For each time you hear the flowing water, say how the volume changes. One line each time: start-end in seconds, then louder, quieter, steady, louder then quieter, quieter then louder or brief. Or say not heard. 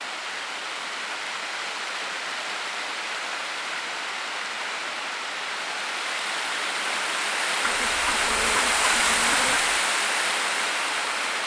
0.0-11.4 louder.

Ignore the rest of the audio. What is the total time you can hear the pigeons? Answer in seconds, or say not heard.
2 s.